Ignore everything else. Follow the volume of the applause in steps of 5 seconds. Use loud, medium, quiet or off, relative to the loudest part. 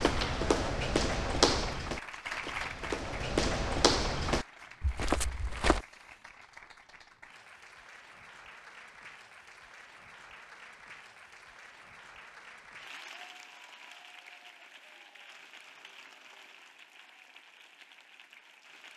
loud, medium, medium, quiet.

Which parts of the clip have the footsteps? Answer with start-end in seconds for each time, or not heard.
0.0-5.8.